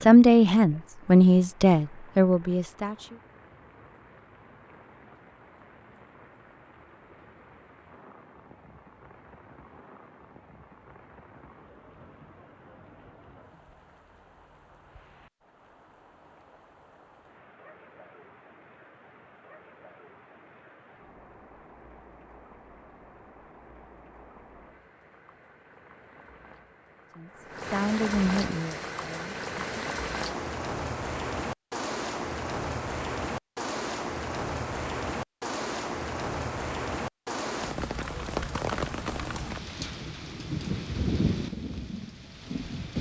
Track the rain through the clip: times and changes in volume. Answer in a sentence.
You can hear the rain from 0.0 to 42.9 s, getting louder.